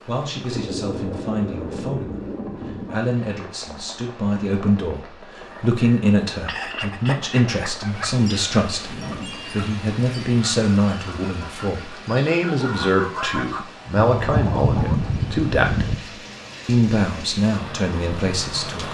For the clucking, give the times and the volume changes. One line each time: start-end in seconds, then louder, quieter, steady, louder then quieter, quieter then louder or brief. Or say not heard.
5.5-15.9 quieter then louder.